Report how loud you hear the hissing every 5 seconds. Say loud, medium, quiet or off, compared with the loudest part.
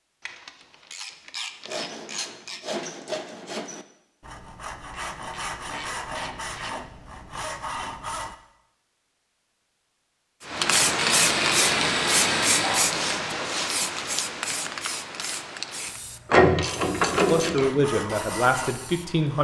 off, off, loud, quiet.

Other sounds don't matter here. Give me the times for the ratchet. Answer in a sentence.
You can hear the ratchet from 0.2 to 2.6 s, from 4.9 to 6.8 s, from 11.2 to 12.8 s and from 16.3 to 17.9 s.